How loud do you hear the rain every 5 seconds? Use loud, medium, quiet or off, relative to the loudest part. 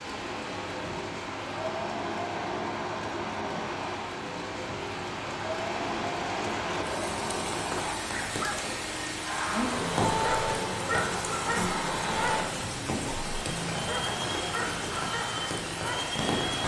medium, loud, loud, loud.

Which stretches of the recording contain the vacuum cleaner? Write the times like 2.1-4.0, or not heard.
0.0-16.6.